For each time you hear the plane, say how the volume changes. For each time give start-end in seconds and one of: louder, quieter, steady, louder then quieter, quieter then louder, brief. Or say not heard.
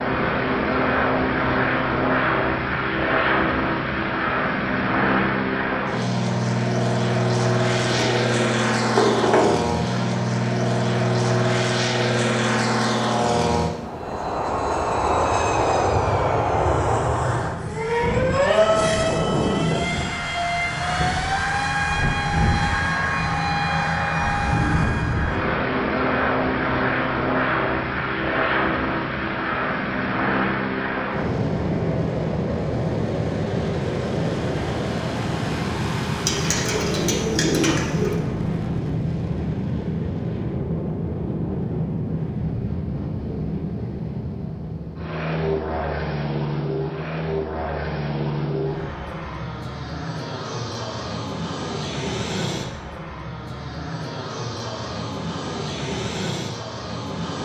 0.0-57.4 quieter.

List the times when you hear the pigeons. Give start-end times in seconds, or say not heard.
7.8-10.1, 36.2-38.2.